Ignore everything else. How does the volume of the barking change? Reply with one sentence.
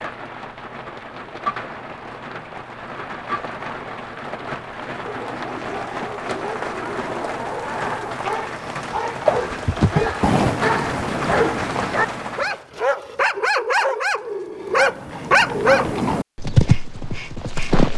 The loudness of the barking goes up.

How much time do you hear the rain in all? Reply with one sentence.
The rain can be heard for 13 seconds in total.